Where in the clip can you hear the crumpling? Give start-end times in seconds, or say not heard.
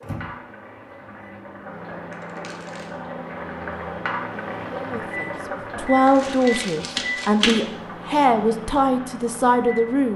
2.1-3.0, 6.0-7.6.